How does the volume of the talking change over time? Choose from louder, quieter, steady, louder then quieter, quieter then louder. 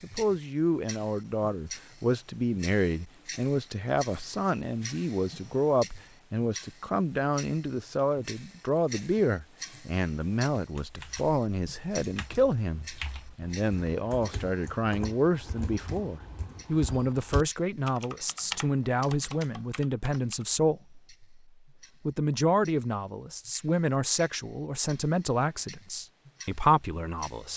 steady.